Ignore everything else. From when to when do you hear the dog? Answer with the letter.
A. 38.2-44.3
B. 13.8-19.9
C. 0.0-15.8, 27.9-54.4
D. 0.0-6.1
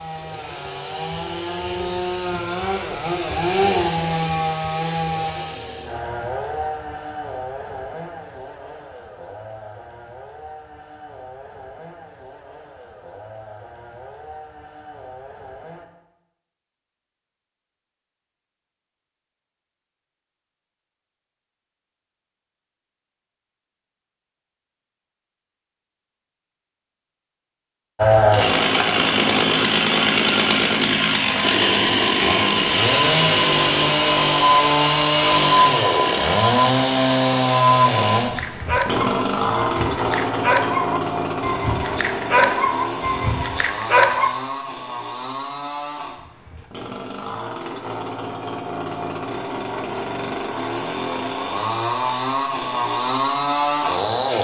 A.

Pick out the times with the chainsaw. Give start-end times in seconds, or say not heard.
0.0-15.8, 27.9-54.4.